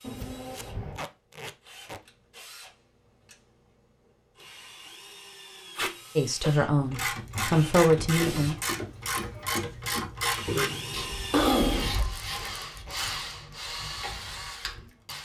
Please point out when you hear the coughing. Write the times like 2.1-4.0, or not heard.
0.0-1.1, 6.4-7.0, 10.4-11.9.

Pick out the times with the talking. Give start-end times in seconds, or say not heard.
6.2-8.6.